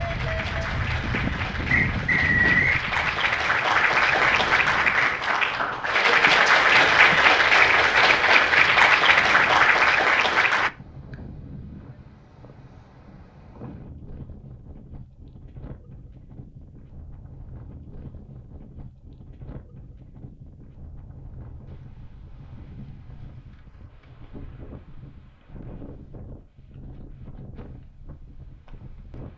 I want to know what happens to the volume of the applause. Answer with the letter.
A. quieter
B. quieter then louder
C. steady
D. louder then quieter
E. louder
E.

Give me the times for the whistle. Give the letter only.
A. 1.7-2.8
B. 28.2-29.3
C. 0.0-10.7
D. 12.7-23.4
A.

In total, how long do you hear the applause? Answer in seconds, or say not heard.
11 s.